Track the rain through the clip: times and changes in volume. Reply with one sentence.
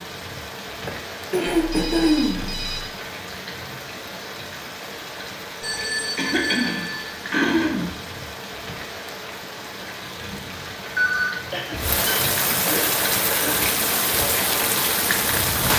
The rain can be heard from 0.0 to 15.7 s, getting louder.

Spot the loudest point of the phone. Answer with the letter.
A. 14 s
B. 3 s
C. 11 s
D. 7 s
C.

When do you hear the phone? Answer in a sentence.
You can hear the phone from 1.6 to 2.9 s, from 5.6 to 7.2 s and from 10.9 to 12.8 s.